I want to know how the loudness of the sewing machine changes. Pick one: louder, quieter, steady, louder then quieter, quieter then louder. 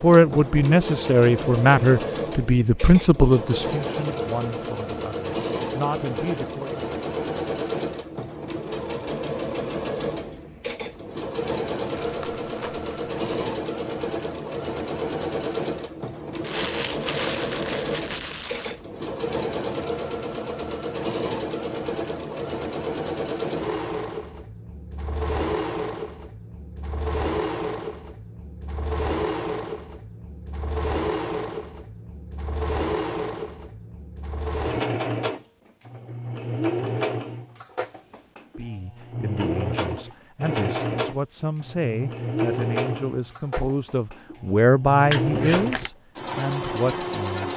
steady.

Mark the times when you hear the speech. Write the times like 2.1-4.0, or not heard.
0.0-6.8, 38.5-47.5.